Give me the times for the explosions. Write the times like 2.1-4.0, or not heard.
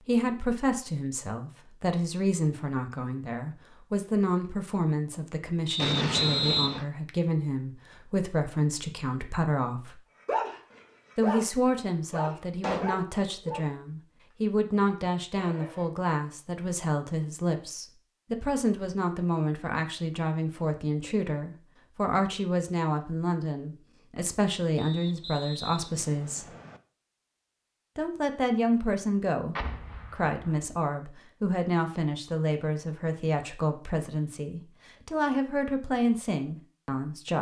5.8-6.8, 12.6-13.0, 29.6-30.8.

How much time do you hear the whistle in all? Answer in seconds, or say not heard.
3 s.